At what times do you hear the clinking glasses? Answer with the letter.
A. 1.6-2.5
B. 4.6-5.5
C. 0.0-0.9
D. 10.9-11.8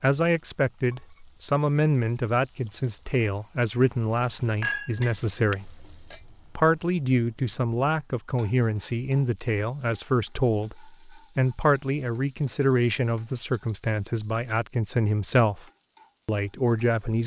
B.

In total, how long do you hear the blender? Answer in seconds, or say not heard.
not heard.